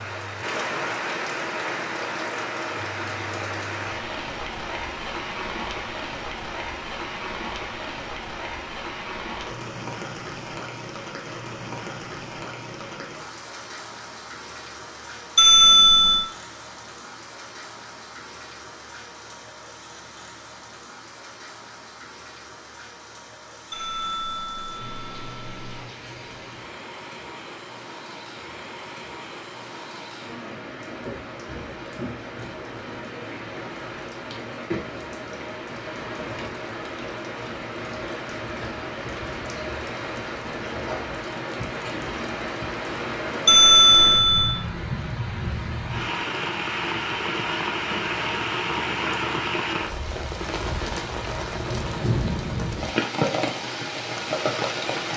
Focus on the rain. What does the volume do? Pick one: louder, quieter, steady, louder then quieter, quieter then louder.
quieter then louder.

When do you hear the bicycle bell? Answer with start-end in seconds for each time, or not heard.
15.3-16.2, 23.7-25.8, 43.5-44.6.